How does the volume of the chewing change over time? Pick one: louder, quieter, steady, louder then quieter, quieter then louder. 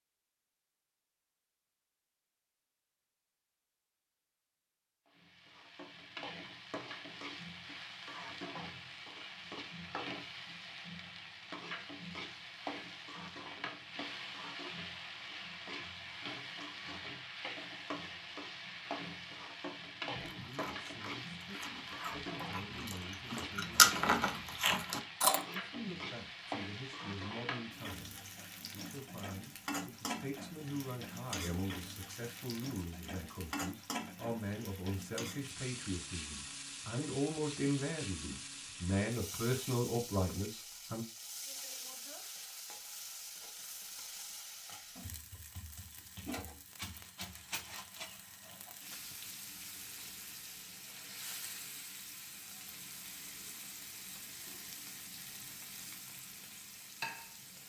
louder then quieter.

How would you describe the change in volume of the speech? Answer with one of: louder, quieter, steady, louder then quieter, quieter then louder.
louder.